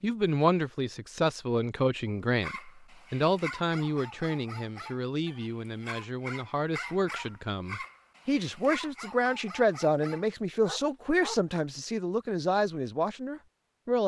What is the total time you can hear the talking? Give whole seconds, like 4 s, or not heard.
14 s.